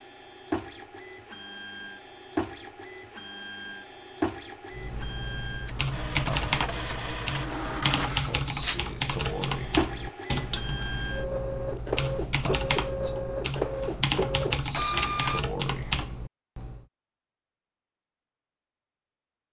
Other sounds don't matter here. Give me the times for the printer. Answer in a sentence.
The printer can be heard from 0.0 to 15.4 s.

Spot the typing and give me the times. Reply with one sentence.
You can hear the typing from 4.7 to 16.9 s.